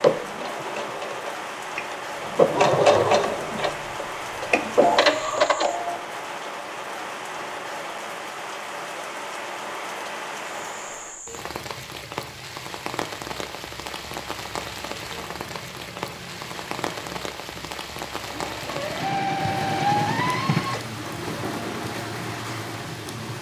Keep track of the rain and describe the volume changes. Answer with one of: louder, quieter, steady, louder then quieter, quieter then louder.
steady.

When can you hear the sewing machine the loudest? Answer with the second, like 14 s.
3 s.